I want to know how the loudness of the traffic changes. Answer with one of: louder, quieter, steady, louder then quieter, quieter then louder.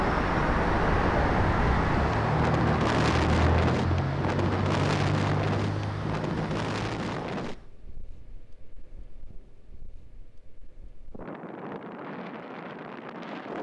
quieter.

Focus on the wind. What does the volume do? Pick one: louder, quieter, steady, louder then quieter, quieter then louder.
quieter then louder.